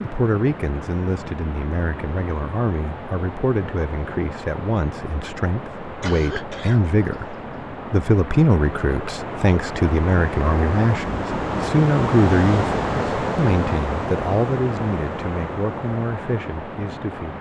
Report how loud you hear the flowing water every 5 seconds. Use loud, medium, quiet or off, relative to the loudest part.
medium, medium, loud, medium.